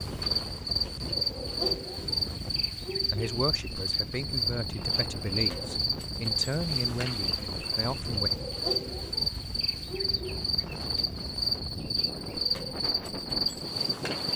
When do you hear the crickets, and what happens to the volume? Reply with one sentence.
You can hear the crickets from 0.0 to 14.3 s, at a steady volume.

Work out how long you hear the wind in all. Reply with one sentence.
The wind can be heard for 14 seconds in total.